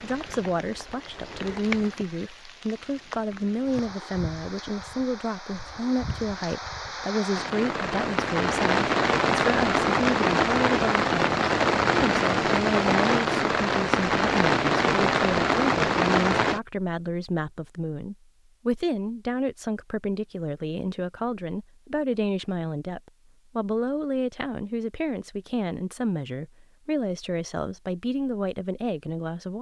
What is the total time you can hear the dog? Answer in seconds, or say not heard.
not heard.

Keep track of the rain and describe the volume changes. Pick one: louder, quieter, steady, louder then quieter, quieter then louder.
louder.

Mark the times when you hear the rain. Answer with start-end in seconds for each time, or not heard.
0.0-16.6.